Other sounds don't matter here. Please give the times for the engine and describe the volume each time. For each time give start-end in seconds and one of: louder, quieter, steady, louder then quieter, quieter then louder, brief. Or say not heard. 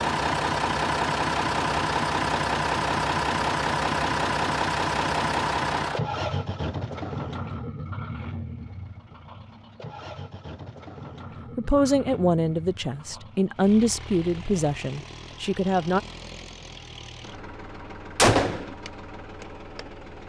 0.0-20.2 quieter.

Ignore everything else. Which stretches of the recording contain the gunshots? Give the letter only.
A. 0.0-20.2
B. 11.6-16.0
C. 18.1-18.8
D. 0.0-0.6
C.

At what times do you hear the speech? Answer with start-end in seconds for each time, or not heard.
11.6-16.0.